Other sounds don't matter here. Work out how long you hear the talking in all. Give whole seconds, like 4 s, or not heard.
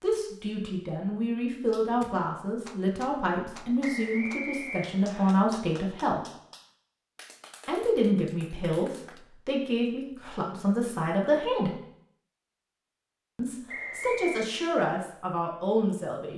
13 s.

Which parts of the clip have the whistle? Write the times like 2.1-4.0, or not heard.
3.8-5.3, 13.7-14.5.